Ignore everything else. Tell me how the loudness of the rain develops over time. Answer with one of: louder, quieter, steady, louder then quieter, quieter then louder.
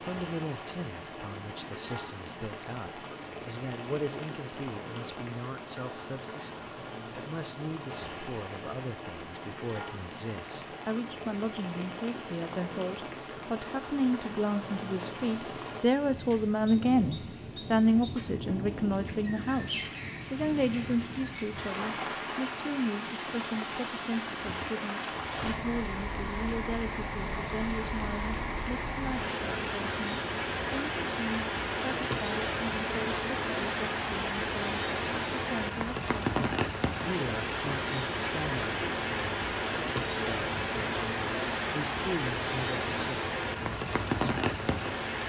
louder.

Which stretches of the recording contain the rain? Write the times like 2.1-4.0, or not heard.
0.0-45.2.